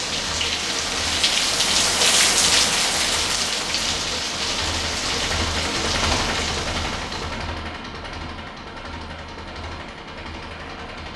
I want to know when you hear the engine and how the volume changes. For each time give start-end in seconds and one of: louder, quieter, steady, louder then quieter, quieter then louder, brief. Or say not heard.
0.0-11.1 louder then quieter.